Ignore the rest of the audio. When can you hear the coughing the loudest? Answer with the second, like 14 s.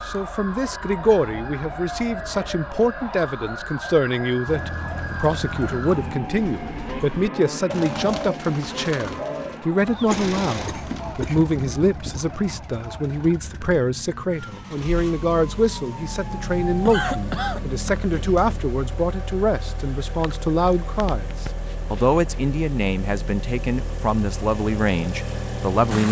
17 s.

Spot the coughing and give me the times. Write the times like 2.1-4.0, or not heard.
9.9-11.4, 16.9-17.9.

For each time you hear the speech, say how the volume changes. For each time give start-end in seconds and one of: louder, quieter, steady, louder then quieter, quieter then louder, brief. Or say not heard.
0.1-26.0 steady.